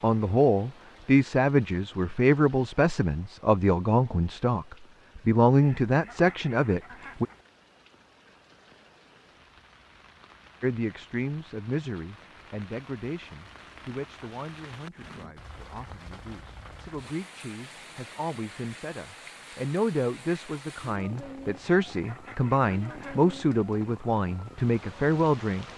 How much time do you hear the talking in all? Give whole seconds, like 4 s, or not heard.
22 s.